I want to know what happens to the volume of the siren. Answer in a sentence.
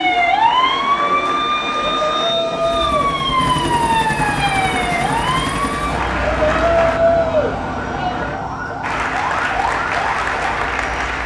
The loudness of the siren goes down.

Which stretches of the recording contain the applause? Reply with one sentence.
You can hear the applause from 0.0 to 2.4 s, from 4.2 to 7.0 s and from 8.8 to 11.2 s.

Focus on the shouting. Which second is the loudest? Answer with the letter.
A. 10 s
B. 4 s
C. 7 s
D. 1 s
C.